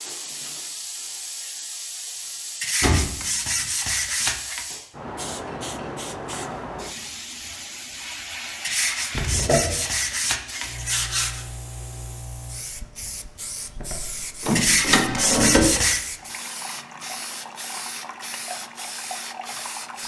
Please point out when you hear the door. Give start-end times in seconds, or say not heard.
2.8-3.6, 9.1-9.8, 13.8-15.8.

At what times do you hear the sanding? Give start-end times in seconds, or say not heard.
2.6-4.7, 8.6-11.4, 14.6-16.1.